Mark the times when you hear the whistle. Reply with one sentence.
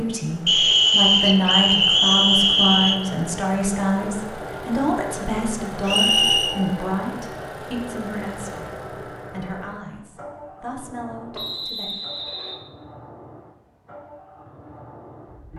The whistle can be heard from 0.5 to 3.0 s, from 5.8 to 6.5 s and from 11.3 to 12.7 s.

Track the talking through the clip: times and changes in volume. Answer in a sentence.
The talking can be heard from 0.0 to 11.9 s, getting quieter.